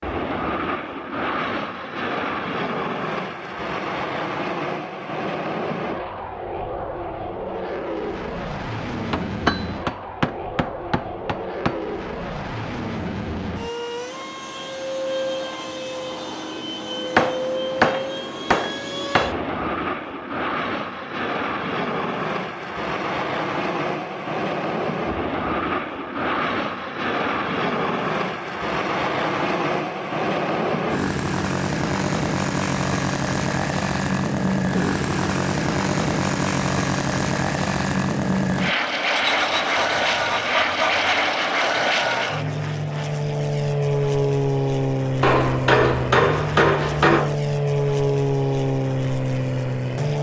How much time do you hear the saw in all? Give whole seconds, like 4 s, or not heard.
2 s.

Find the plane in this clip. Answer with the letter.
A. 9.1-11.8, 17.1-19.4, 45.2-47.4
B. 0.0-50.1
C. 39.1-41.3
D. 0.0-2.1
B.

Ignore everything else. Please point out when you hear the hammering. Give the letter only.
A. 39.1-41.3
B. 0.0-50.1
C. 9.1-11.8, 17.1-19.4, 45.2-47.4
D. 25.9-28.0
C.